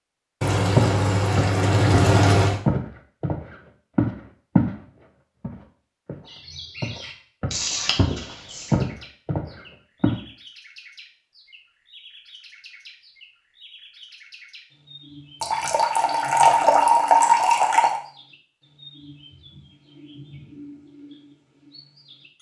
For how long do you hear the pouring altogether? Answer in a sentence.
The pouring can be heard for 6 seconds in total.